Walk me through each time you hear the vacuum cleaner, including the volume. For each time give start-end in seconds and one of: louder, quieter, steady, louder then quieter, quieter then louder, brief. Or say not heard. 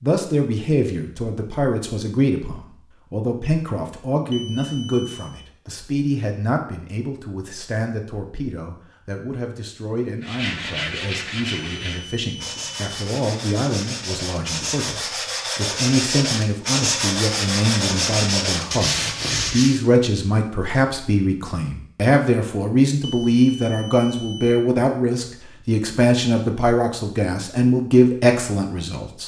not heard.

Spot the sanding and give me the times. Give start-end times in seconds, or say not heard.
10.2-19.8.